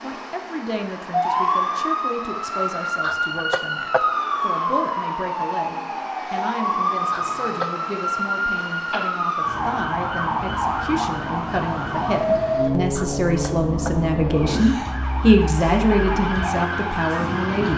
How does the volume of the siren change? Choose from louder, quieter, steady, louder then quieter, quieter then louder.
steady.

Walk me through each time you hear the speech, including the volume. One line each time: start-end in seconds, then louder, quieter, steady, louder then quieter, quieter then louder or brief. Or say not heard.
0.0-17.7 louder.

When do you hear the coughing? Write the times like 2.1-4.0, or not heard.
3.0-4.0, 7.1-7.7, 12.9-14.9.